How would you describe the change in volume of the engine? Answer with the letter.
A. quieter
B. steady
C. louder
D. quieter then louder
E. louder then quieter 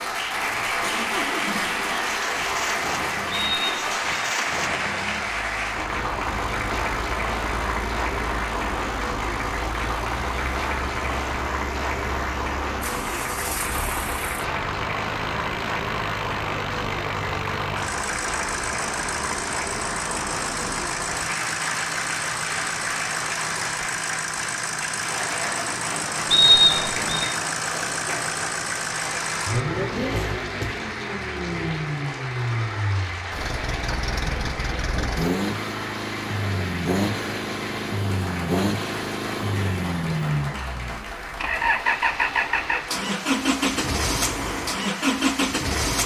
C.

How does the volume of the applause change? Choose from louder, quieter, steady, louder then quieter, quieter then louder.
quieter.